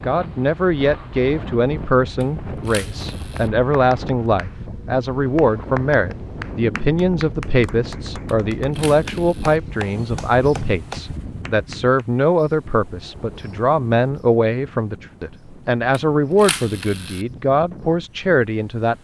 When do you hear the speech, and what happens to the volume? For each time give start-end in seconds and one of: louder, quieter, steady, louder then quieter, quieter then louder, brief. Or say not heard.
0.0-18.9 steady.